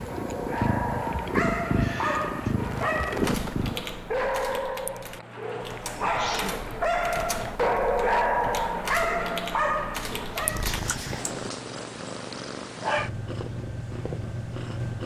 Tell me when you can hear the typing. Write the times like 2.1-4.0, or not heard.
3.1-11.5.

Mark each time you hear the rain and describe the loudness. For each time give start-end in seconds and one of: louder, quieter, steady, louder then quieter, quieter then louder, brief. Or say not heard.
not heard.